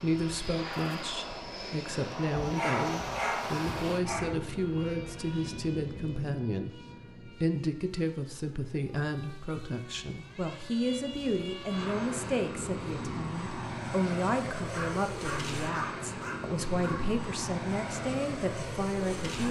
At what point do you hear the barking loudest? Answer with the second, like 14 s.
3 s.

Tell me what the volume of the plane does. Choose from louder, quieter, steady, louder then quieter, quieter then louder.
quieter then louder.